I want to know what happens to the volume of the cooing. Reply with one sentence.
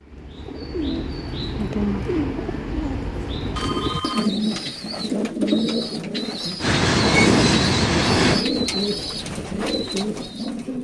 The loudness of the cooing stays about the same.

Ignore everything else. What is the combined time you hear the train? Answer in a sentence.
You can hear the train for 2 seconds altogether.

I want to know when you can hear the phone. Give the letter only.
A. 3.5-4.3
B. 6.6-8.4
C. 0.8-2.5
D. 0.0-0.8
A.